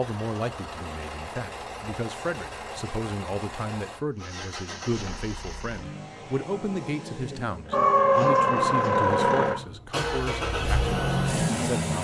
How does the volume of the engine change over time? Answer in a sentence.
The volume of the engine goes up.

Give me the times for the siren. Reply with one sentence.
The siren can be heard from 7.7 to 9.6 s.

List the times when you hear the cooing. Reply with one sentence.
The cooing can't be heard in this clip.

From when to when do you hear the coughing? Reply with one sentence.
You can't hear the coughing here.